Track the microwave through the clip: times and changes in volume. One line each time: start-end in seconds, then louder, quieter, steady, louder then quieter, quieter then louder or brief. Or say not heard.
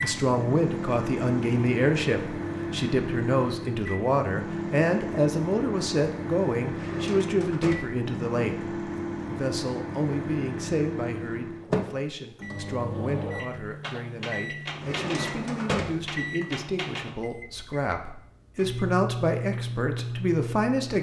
0.0-20.9 steady.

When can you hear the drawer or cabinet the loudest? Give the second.
16 s.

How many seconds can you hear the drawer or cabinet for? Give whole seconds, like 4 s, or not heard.
3 s.